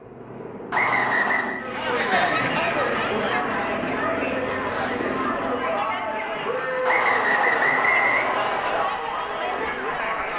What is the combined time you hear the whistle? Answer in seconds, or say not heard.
3 s.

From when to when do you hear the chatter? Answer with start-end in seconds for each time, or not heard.
1.6-10.3.